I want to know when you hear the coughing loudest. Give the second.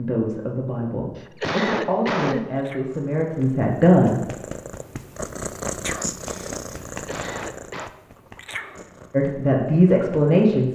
2 s.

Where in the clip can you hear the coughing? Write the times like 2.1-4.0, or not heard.
1.1-2.5, 6.8-7.9.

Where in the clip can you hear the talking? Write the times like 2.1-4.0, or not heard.
0.0-4.2, 9.1-10.7.